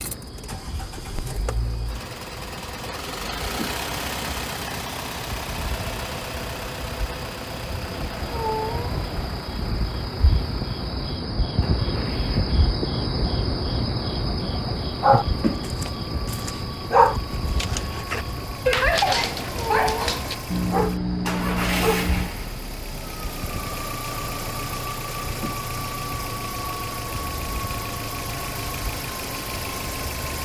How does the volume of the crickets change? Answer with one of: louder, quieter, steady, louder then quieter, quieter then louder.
louder then quieter.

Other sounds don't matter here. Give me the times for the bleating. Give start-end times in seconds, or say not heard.
not heard.